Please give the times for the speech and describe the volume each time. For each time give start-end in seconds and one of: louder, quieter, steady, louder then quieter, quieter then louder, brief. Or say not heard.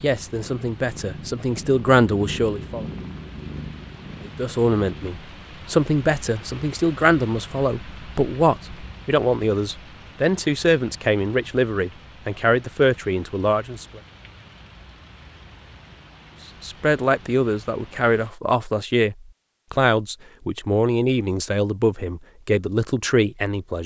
0.0-2.9 brief
4.2-14.0 steady
16.6-23.8 steady.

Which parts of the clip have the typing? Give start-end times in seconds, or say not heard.
not heard.